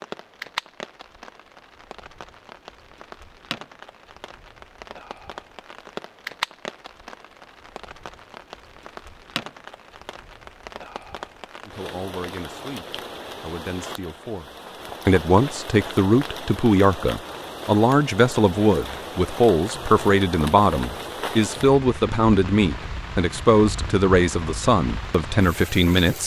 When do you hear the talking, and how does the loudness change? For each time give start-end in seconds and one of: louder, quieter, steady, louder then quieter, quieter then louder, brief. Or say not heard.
11.7-26.2 louder.